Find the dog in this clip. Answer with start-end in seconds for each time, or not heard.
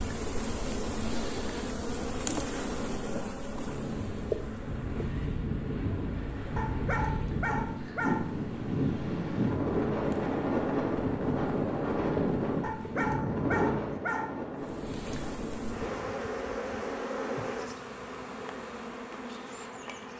6.5-8.2, 12.6-14.3.